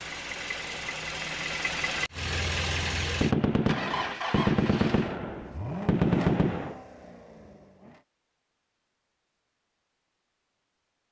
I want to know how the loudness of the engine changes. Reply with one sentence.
The loudness of the engine goes down.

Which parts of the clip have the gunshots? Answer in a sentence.
The gunshots can be heard from 3.2 to 6.8 s.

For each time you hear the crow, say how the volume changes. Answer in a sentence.
You can't hear the crow here.